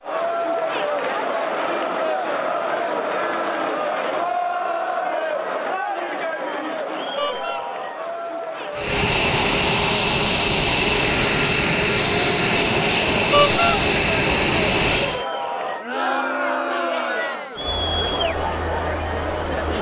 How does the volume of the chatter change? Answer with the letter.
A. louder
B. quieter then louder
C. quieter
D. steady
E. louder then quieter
B.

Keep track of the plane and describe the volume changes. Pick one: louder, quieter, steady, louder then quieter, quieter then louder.
steady.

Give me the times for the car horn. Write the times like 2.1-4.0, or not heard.
7.2-7.7, 13.3-13.8.